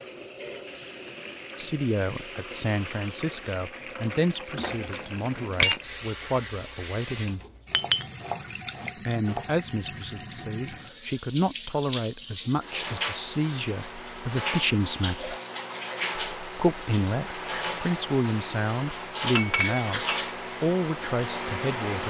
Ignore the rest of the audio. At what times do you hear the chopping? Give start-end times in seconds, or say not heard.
7.7-9.6.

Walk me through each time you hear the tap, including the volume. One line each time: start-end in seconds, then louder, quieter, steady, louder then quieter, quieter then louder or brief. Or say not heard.
0.0-22.0 louder.